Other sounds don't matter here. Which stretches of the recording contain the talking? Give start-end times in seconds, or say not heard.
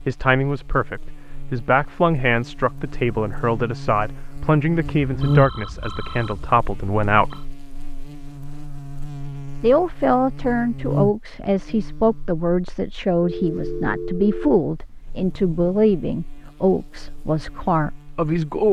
0.1-7.5, 9.6-18.6.